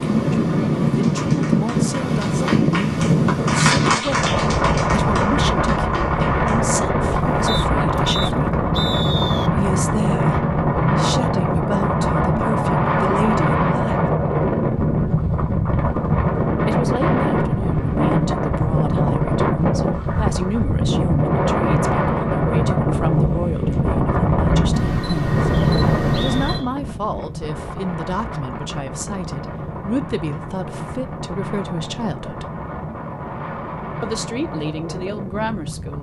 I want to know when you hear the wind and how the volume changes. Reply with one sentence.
The wind can be heard from 0.0 to 35.9 s, getting quieter.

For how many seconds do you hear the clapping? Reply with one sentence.
You can hear the clapping for 6 seconds altogether.